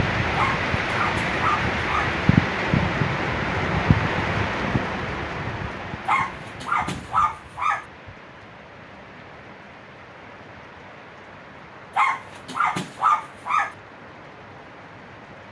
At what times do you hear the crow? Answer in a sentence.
The crow can't be heard in this clip.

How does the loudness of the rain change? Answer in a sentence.
The loudness of the rain goes down.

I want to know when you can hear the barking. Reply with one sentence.
The barking can be heard from 0.3 to 2.1 s, from 6.0 to 7.8 s and from 11.9 to 13.8 s.